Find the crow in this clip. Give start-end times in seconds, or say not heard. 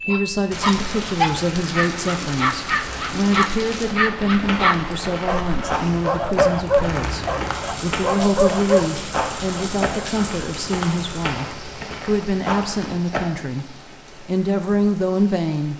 not heard.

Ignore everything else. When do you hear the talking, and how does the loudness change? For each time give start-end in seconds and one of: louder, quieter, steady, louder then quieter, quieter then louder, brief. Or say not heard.
0.1-15.7 steady.